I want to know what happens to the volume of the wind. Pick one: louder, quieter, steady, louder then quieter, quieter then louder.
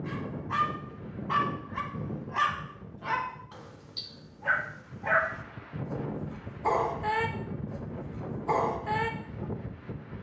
quieter then louder.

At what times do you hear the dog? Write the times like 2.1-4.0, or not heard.
0.1-9.4.